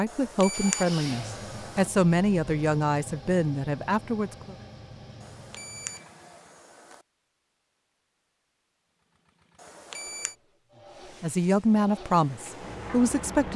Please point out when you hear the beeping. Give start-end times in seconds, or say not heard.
0.1-1.9, 5.2-7.0, 9.6-10.3.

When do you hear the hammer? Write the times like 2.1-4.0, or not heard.
not heard.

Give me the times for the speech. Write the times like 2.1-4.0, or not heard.
0.0-4.5, 11.2-13.5.